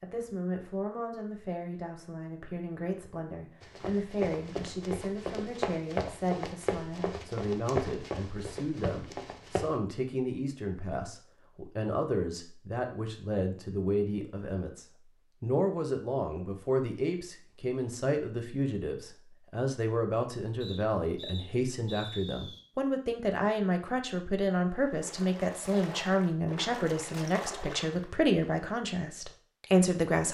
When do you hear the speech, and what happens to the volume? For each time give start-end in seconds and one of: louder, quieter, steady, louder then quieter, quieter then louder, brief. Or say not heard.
0.0-30.2 louder.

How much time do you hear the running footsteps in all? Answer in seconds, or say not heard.
6 s.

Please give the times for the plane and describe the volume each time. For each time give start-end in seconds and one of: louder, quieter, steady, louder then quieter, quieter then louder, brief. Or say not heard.
not heard.